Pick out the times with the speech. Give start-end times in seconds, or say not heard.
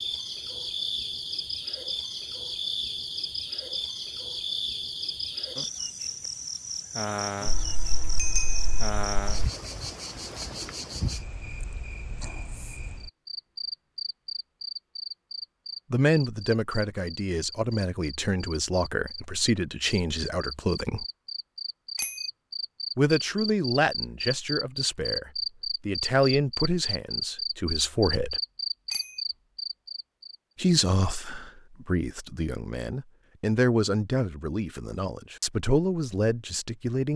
15.9-21.1, 22.9-28.4, 30.6-37.1.